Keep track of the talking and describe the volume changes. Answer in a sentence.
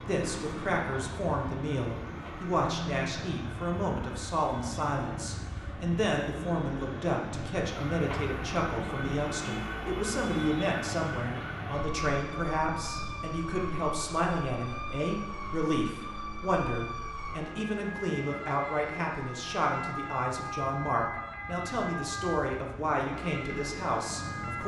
The loudness of the talking stays about the same.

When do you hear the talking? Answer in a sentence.
The talking can be heard from 0.1 to 24.6 s.